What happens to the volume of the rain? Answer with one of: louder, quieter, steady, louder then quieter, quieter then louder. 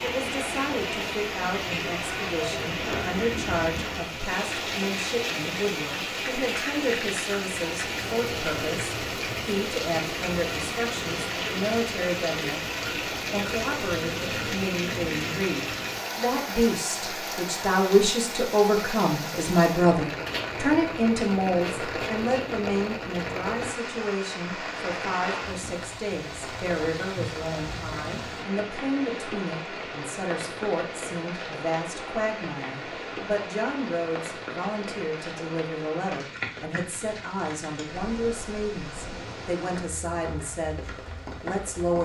quieter.